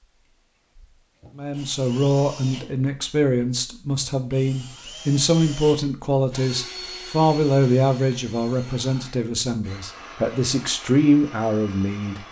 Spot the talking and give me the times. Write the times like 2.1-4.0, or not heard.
1.4-12.2.